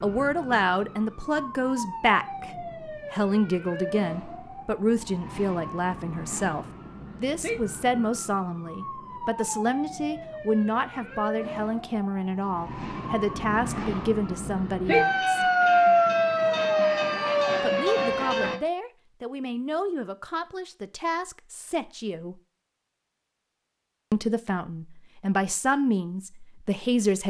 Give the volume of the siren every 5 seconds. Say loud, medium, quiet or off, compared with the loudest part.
quiet, quiet, medium, loud, off, off.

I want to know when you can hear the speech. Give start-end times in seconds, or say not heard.
0.0-15.4, 17.6-22.4, 24.1-27.2.